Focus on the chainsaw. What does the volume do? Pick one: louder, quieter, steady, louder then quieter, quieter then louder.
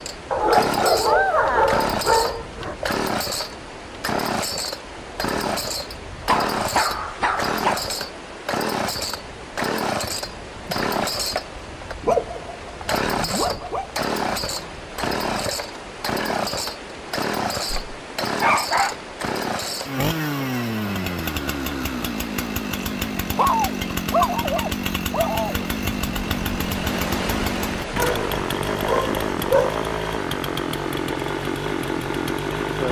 steady.